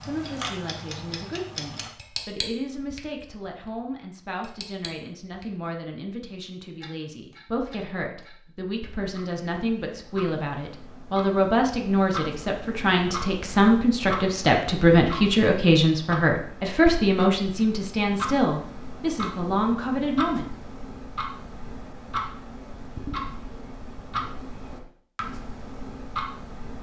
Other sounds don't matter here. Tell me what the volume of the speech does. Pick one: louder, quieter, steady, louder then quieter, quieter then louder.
louder.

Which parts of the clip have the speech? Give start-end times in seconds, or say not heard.
0.0-20.5.